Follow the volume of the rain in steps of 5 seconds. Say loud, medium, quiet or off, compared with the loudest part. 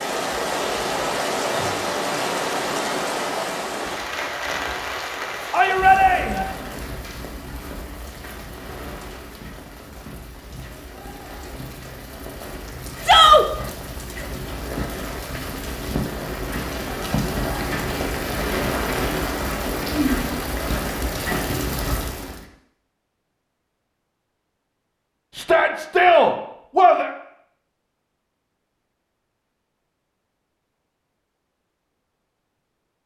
loud, medium, medium, loud, loud, off, off.